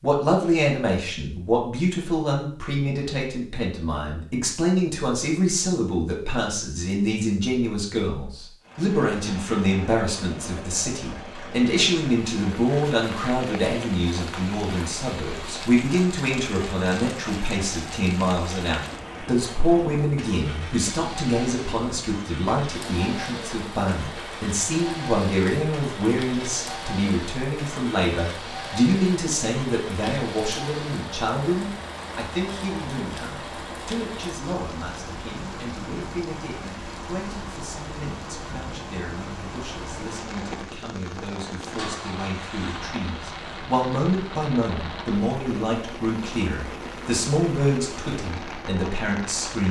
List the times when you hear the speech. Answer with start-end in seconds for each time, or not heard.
0.0-49.6.